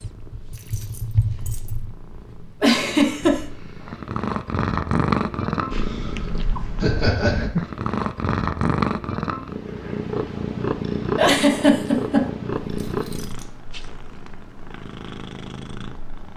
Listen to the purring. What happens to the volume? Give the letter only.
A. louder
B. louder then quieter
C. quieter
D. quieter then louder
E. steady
B.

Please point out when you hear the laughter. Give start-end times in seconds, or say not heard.
2.6-3.4, 6.8-7.5, 11.2-12.3.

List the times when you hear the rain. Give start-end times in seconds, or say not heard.
not heard.